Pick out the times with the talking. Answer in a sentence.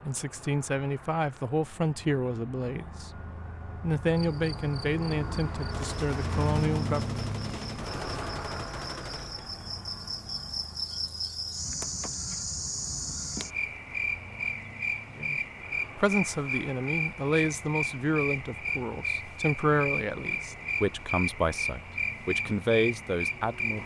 You can hear the talking from 0.0 to 7.2 s and from 15.2 to 23.8 s.